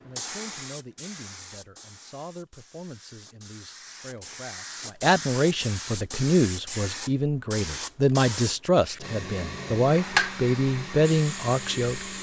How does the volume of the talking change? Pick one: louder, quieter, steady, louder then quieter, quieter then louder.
louder.